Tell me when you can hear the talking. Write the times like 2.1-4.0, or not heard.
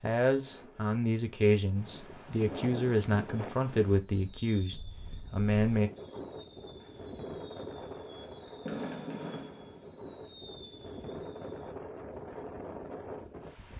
0.0-5.9.